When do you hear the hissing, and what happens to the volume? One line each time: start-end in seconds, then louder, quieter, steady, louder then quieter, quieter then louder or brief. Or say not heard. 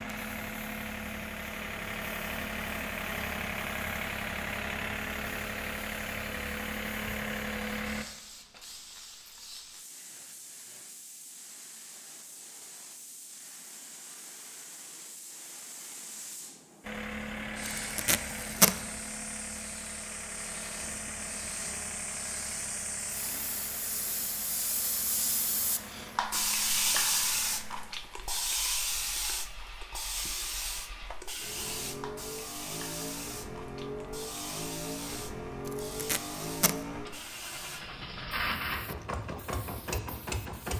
0.0-40.7 louder then quieter.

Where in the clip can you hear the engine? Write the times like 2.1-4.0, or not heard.
0.0-8.1, 16.8-40.7.